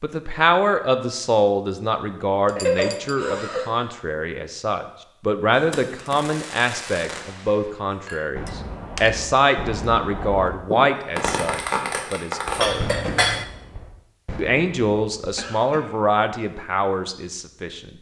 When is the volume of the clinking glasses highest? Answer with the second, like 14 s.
13 s.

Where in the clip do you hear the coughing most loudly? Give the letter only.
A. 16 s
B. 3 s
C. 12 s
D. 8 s
B.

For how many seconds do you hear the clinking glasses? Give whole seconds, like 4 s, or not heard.
3 s.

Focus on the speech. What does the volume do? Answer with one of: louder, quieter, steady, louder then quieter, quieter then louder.
steady.